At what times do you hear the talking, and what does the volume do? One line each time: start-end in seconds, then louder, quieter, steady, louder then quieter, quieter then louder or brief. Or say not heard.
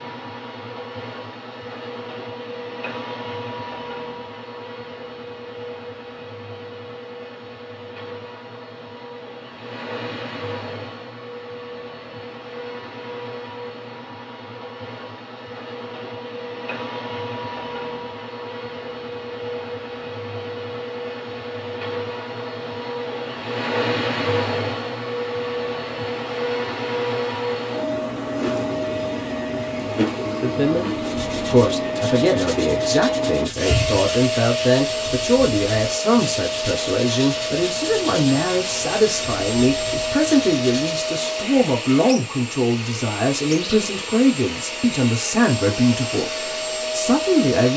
30.4-47.7 steady.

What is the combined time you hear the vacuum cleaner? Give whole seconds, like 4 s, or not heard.
48 s.